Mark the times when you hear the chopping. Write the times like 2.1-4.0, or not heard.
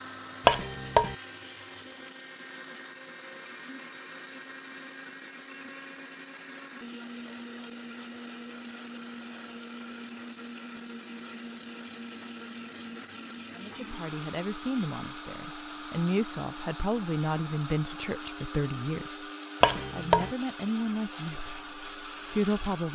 0.5-1.1, 19.6-20.4.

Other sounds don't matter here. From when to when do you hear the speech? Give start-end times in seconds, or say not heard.
13.6-22.9.